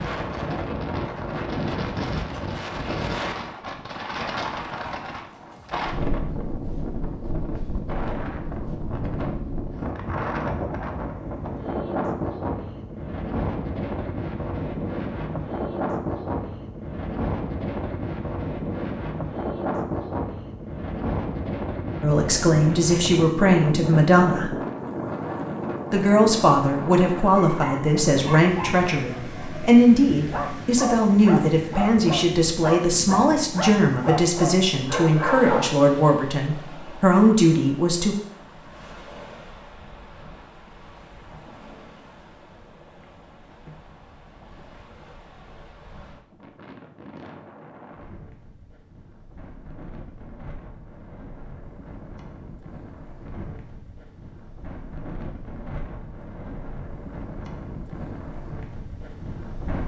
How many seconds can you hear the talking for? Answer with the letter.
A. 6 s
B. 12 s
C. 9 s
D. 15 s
D.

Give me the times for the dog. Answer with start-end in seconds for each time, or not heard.
27.4-35.9.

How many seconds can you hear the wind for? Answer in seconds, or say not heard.
60 s.